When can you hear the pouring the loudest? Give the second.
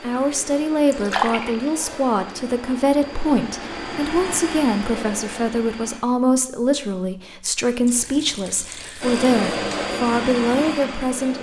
1 s.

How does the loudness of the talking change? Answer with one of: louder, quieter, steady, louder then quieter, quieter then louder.
steady.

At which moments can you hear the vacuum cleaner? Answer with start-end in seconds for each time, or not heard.
0.0-6.0, 9.0-11.3.